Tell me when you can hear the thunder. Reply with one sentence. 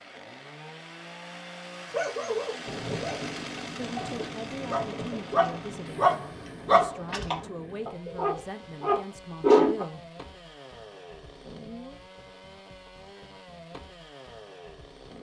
The thunder can be heard from 2.6 to 6.8 s.